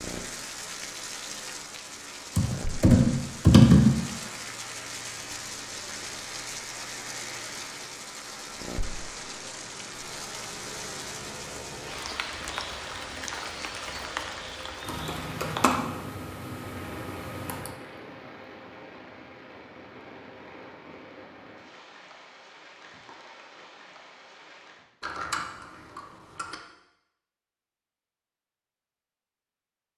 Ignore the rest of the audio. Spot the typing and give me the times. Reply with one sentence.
The typing can be heard from 2.4 to 3.9 s, from 14.8 to 17.7 s and from 25.0 to 26.6 s.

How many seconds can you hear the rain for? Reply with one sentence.
The rain can be heard for 25 seconds in total.